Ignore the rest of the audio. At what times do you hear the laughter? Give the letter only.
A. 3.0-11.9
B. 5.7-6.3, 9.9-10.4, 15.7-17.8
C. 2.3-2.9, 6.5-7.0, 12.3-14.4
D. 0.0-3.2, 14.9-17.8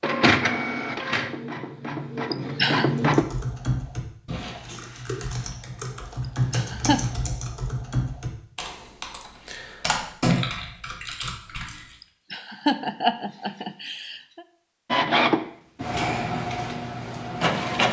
C.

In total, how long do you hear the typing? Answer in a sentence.
You can hear the typing for 9 seconds altogether.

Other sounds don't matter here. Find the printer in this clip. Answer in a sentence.
The printer can be heard from 0.0 to 3.2 s and from 14.9 to 17.8 s.